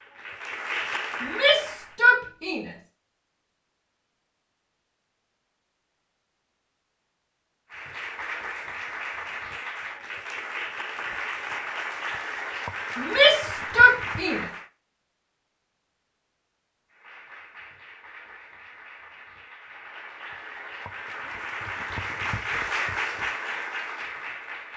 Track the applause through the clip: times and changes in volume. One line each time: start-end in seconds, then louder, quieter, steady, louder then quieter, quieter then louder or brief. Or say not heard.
0.0-2.0 brief
7.7-14.7 steady
16.9-24.7 louder.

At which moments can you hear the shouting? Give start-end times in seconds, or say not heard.
1.2-2.7, 12.9-14.4.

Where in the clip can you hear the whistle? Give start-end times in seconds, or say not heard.
not heard.